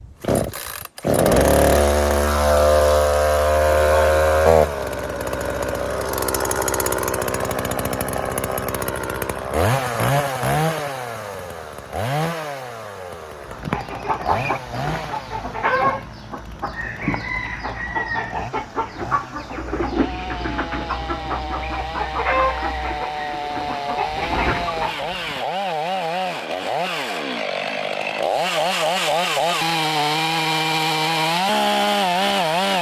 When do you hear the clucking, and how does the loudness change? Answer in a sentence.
The clucking can be heard from 13.4 to 25.4 s, at a steady volume.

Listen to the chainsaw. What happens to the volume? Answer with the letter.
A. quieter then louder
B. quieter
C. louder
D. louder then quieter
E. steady
A.